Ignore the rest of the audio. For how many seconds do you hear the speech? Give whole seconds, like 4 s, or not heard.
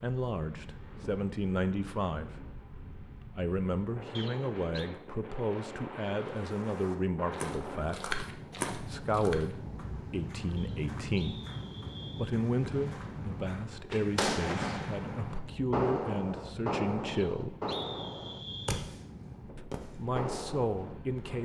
18 s.